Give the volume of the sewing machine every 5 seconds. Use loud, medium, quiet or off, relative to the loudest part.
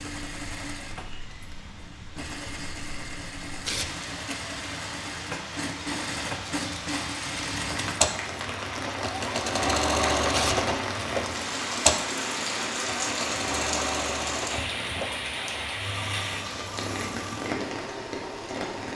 medium, loud, loud, medium.